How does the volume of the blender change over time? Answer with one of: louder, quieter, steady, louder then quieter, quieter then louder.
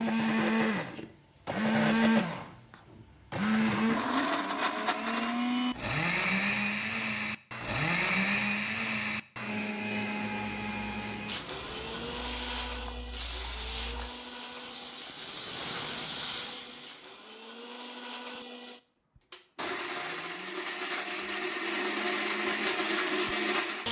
quieter then louder.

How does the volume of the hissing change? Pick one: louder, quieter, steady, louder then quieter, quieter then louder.
louder.